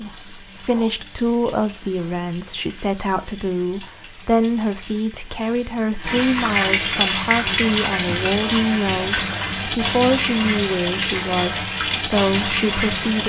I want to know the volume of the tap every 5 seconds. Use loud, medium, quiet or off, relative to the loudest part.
quiet, loud, loud.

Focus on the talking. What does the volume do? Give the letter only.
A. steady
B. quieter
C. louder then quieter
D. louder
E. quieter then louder
A.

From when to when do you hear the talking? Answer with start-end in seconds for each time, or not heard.
0.0-13.2.